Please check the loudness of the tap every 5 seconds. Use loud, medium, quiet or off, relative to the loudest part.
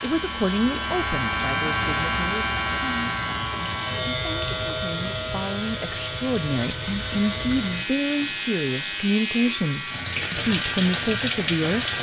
medium, loud, loud.